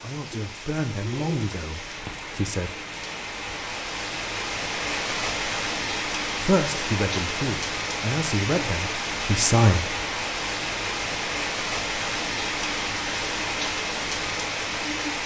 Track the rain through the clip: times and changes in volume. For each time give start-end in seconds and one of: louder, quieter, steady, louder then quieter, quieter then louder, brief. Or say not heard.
0.0-15.2 louder.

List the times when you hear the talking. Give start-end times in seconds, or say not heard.
0.0-2.7, 6.4-9.8.